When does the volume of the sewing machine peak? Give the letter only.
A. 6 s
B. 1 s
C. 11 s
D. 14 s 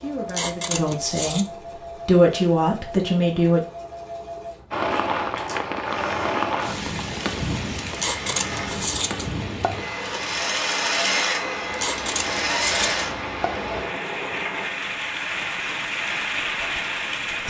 C.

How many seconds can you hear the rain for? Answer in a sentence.
The rain can be heard for 13 seconds in total.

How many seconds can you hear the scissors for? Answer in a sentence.
The scissors can be heard for 5 seconds in total.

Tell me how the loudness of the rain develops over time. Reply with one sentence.
The volume of the rain goes down, then up.